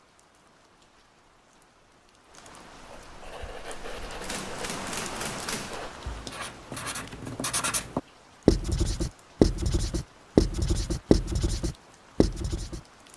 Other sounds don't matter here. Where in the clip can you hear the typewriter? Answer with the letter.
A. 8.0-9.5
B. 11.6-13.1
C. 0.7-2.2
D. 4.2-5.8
D.